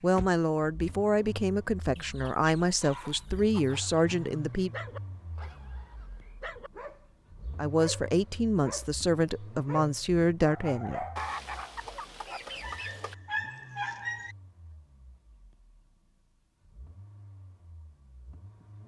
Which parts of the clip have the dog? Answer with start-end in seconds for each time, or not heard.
2.8-14.3.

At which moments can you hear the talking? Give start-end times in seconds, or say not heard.
0.0-4.7, 7.5-11.1.